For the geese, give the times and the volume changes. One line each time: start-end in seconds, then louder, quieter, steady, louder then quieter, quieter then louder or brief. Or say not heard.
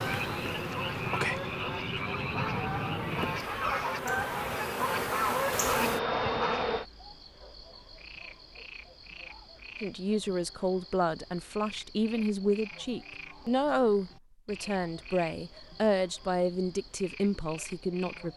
0.0-6.8 louder.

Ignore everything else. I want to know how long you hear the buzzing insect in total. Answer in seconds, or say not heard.
7 s.